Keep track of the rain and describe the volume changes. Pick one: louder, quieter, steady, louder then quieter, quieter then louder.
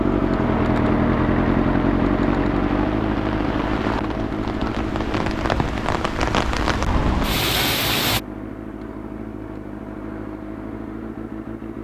louder.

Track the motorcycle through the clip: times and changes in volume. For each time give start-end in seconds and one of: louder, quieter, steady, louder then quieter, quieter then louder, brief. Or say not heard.
0.0-11.8 quieter.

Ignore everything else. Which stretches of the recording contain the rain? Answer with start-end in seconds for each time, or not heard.
0.0-8.2.